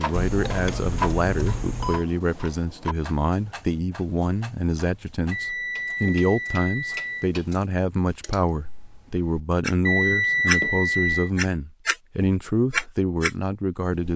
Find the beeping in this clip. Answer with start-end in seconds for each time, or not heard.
0.1-2.0, 5.3-7.3, 9.8-11.3.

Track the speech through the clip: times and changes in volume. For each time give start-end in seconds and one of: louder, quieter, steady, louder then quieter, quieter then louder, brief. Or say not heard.
0.0-14.1 steady.